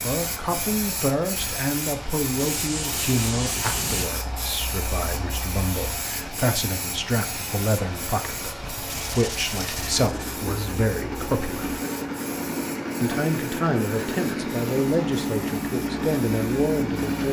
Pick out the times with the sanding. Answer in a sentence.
The sanding can be heard from 2.4 to 4.1 s and from 8.9 to 10.3 s.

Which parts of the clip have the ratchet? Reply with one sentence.
The ratchet can't be heard in this clip.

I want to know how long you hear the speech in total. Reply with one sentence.
You can hear the speech for 16 seconds altogether.